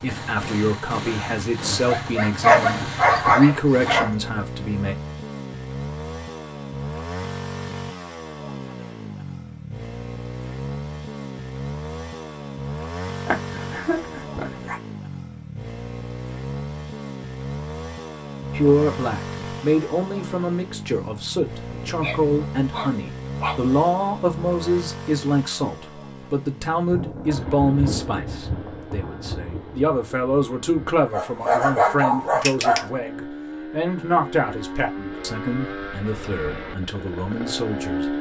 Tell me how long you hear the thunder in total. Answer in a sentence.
You can hear the thunder for 4 seconds altogether.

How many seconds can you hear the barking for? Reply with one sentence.
You can hear the barking for 8 seconds altogether.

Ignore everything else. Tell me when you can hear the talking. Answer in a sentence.
The talking can be heard from 0.0 to 5.0 s and from 18.6 to 38.1 s.